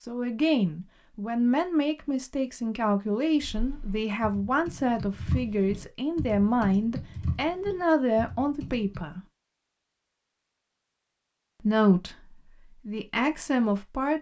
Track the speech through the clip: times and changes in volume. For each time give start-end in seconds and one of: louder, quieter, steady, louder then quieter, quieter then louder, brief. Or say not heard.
0.0-9.2 steady
11.6-14.1 brief.